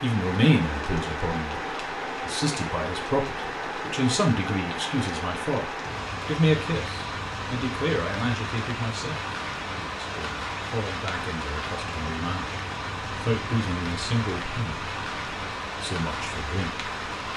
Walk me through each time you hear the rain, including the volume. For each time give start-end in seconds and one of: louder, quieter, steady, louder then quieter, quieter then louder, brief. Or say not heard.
0.0-17.3 steady.